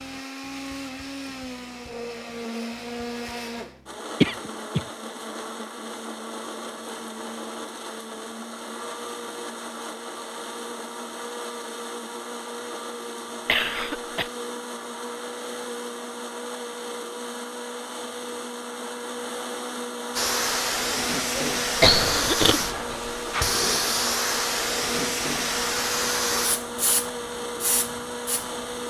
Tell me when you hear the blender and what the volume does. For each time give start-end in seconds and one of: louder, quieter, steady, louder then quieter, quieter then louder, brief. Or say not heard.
0.0-28.8 steady.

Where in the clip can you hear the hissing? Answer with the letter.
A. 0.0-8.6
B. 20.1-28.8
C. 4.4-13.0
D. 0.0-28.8
B.